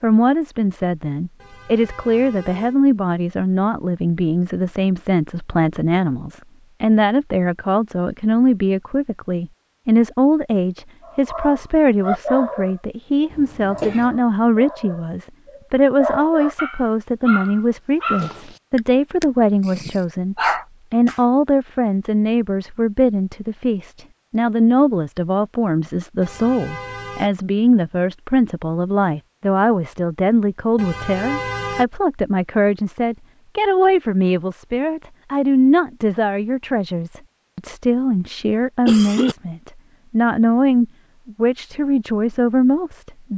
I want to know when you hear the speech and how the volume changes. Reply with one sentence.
The speech can be heard from 0.0 to 43.3 s, at a steady volume.